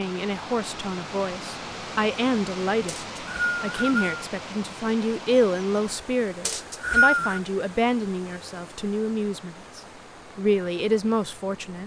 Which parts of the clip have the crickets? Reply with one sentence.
You can't hear the crickets here.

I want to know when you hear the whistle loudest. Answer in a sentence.
The volume of the whistle peaks at 7 seconds.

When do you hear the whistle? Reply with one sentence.
The whistle can be heard from 2.9 to 4.2 s and from 6.5 to 7.4 s.